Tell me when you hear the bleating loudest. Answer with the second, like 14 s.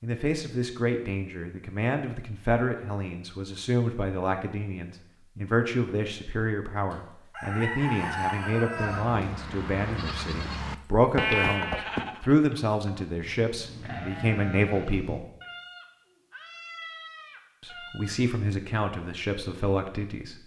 11 s.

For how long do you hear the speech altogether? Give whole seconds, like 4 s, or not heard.
18 s.